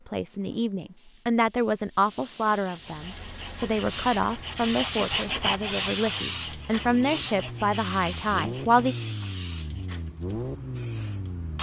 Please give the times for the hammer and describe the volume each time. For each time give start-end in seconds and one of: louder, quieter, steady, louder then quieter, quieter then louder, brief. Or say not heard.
not heard.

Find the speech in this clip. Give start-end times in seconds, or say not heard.
0.1-8.9.